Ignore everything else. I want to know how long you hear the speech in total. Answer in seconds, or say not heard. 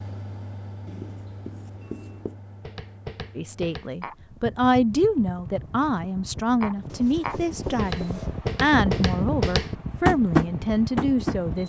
8 s.